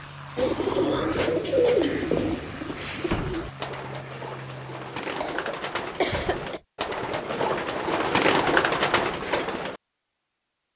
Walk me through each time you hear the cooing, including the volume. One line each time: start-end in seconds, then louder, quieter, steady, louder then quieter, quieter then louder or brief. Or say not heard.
0.3-9.8 quieter then louder.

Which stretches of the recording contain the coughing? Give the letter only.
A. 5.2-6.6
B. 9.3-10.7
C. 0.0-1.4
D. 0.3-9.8
A.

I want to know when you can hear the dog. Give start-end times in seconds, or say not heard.
not heard.